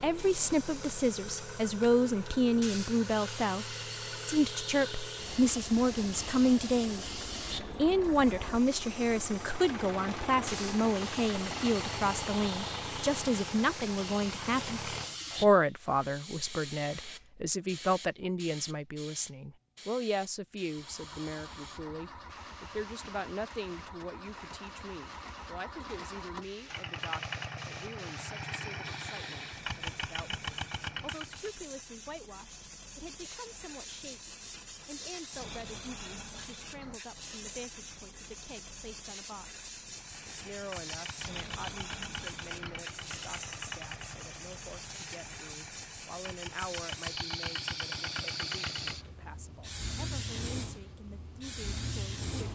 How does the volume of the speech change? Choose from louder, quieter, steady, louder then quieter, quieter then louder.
quieter.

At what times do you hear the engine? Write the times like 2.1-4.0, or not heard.
0.0-15.5, 20.6-31.6, 39.9-52.5.